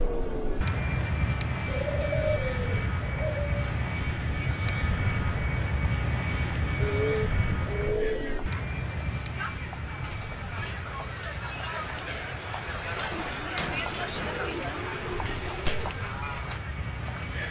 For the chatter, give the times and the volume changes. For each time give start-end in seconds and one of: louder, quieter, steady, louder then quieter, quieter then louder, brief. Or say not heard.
0.0-17.4 louder.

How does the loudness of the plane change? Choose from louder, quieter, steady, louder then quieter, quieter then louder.
quieter.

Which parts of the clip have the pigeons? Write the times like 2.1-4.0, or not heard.
1.6-3.8, 6.8-8.4, 13.1-15.9.